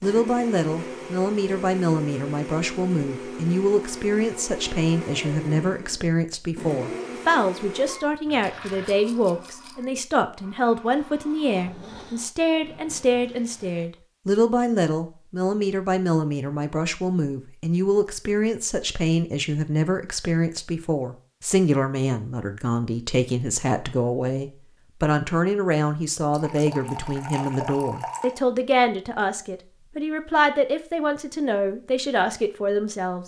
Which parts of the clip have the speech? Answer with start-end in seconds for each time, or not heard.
0.0-33.2.